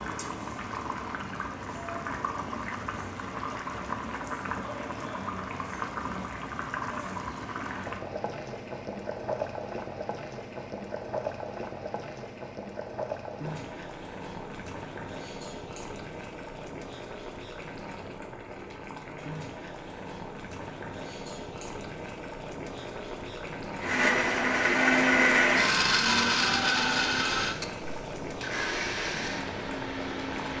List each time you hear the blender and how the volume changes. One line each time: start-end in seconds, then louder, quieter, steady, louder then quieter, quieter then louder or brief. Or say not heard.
23.8-30.5 quieter.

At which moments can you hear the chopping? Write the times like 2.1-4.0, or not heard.
not heard.